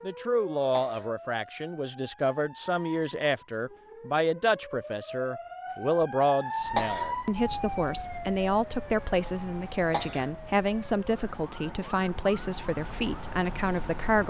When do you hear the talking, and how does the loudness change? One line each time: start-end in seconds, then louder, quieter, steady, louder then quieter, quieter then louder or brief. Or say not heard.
0.1-14.2 steady.